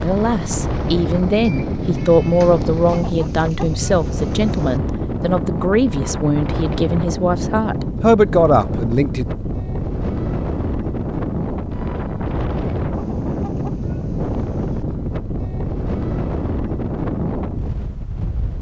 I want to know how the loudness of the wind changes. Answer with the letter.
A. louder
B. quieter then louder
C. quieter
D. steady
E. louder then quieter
D.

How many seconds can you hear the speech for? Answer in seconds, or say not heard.
9 s.